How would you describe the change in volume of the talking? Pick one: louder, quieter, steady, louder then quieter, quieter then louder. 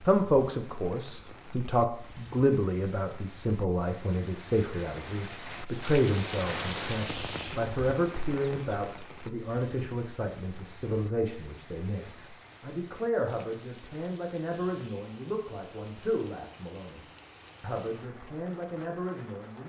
quieter.